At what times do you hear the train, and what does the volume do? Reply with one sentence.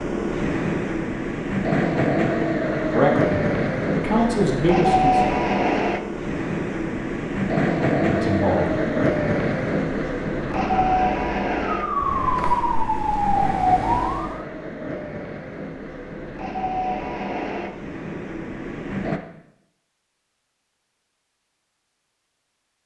You can hear the train from 0.0 to 19.2 s, getting quieter.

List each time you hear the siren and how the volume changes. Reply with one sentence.
The siren can be heard from 10.4 to 14.4 s, getting louder.